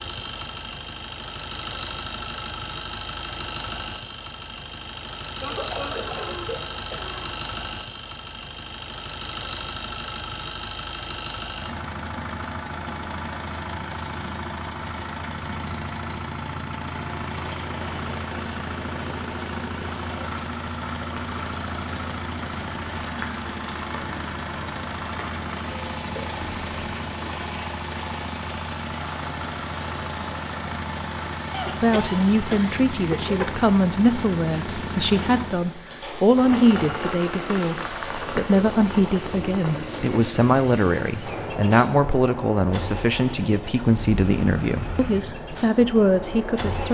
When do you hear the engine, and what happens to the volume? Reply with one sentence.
You can hear the engine from 0.0 to 46.8 s, at a steady volume.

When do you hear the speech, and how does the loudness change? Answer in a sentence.
The speech can be heard from 31.8 to 46.8 s, at a steady volume.